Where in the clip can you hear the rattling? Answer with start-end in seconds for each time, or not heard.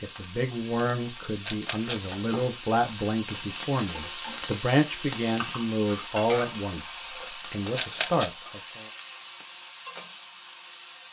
1.4-2.1, 7.8-8.3.